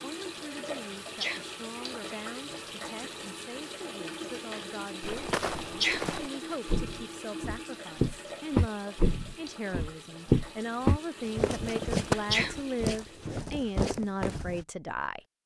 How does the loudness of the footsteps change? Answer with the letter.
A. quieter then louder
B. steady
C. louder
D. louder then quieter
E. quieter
D.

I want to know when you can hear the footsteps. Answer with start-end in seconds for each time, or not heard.
5.0-14.7.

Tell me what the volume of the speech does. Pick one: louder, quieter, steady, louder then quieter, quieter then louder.
louder.